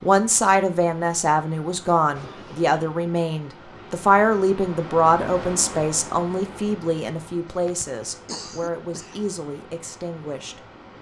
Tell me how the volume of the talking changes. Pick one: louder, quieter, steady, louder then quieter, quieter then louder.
quieter.